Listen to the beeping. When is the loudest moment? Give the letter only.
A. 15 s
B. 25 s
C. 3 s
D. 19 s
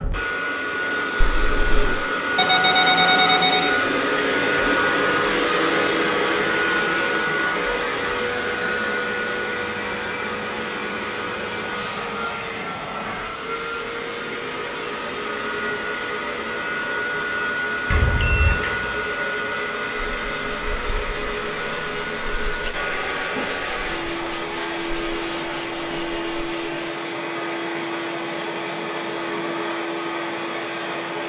C.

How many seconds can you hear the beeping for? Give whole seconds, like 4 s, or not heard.
2 s.